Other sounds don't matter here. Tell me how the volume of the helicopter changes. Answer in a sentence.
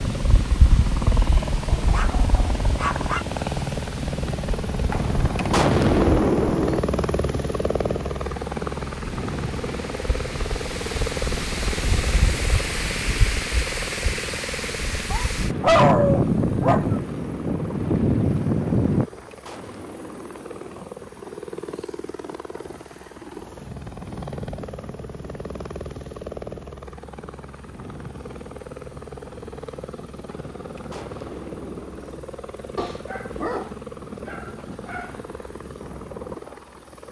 The volume of the helicopter goes down.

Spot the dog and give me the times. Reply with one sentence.
You can hear the dog from 1.8 to 3.2 s, from 15.1 to 16.9 s and from 32.8 to 35.1 s.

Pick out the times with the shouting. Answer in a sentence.
You can't hear the shouting here.